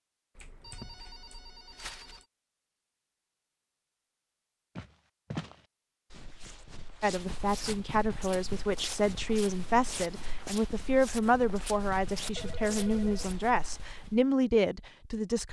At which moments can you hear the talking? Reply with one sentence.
The talking can be heard from 7.0 to 15.4 s.